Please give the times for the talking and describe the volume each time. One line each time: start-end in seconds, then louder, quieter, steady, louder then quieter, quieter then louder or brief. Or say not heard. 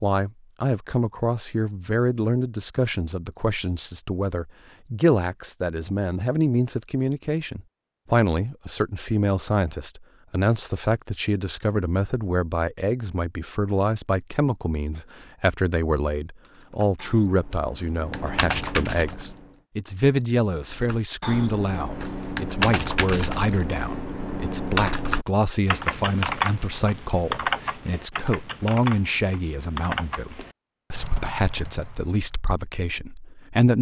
0.0-33.7 steady.